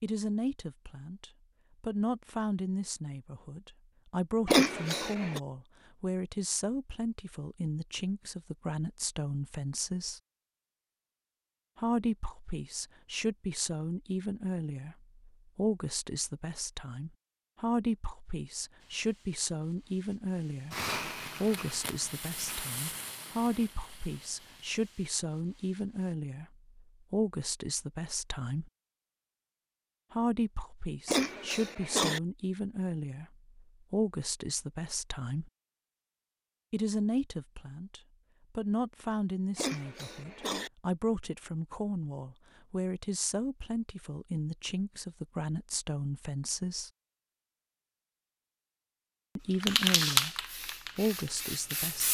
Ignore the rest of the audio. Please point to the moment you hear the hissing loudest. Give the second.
50 s.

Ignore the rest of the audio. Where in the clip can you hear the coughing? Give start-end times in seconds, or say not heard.
4.5-5.4, 31.1-32.2, 39.5-40.7.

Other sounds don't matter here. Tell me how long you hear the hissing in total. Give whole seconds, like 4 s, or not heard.
10 s.